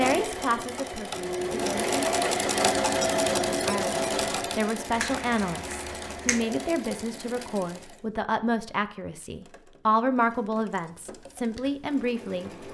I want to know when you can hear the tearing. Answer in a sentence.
You can't hear the tearing here.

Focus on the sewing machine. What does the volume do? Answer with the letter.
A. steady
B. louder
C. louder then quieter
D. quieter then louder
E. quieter
E.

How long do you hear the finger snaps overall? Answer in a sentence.
You can hear the finger snaps for 2 seconds altogether.